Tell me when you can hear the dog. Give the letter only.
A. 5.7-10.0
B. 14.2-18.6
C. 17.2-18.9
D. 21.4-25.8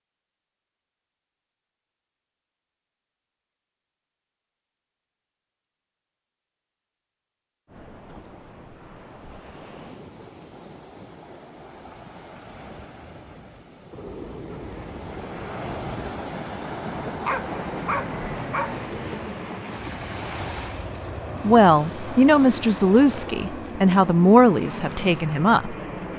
C.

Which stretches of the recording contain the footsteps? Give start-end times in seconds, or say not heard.
not heard.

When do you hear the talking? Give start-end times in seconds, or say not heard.
21.4-25.8.